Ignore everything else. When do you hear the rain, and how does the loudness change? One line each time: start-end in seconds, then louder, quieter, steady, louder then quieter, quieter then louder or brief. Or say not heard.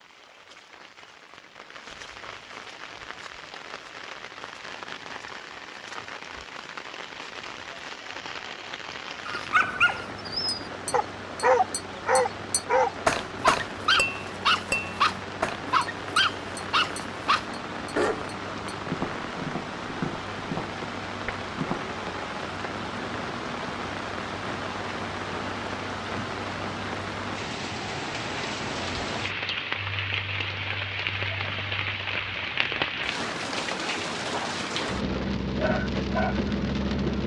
0.0-37.2 louder.